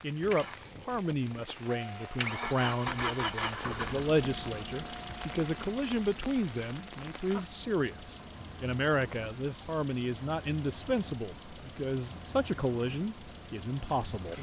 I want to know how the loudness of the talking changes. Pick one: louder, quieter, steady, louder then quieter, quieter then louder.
steady.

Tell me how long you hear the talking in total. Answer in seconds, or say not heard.
14 s.